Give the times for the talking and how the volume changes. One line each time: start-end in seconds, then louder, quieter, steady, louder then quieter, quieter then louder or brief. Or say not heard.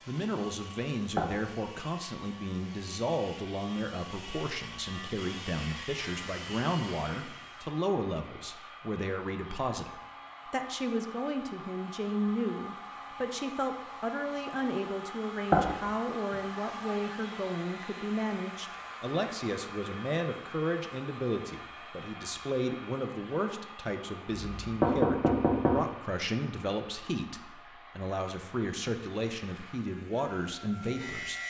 0.1-31.4 steady.